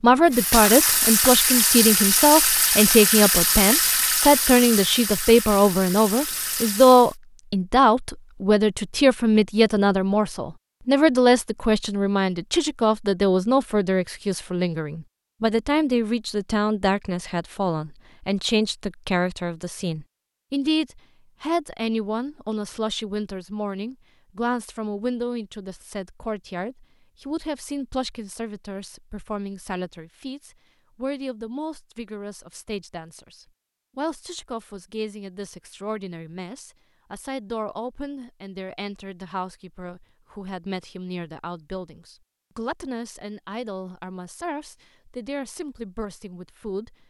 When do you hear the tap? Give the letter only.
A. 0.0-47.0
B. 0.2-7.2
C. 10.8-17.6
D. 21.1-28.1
B.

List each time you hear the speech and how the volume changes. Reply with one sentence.
You can hear the speech from 0.0 to 47.0 s, getting quieter.